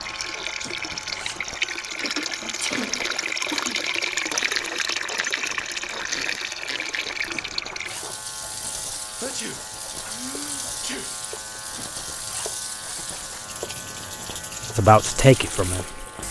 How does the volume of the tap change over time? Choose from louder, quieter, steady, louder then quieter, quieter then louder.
quieter.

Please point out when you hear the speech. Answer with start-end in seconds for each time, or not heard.
14.8-16.1.